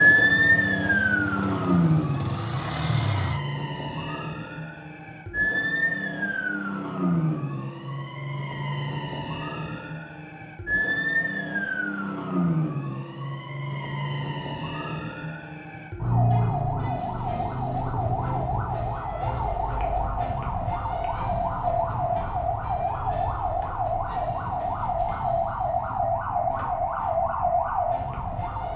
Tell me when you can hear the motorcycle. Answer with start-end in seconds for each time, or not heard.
0.2-3.4.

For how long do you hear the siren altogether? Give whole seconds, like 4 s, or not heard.
29 s.